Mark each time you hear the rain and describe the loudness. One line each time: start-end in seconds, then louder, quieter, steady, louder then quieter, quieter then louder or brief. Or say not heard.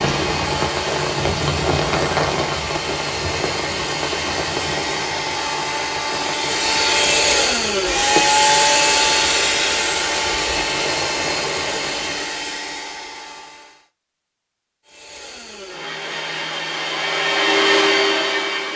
0.0-12.3 quieter then louder.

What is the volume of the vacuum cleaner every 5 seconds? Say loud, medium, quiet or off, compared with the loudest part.
medium, loud, medium, loud.